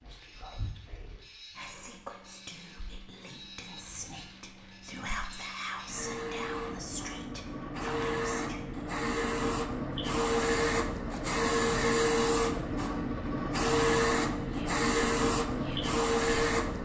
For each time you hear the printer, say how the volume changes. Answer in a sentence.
The printer can be heard from 0.0 to 16.8 s, getting louder.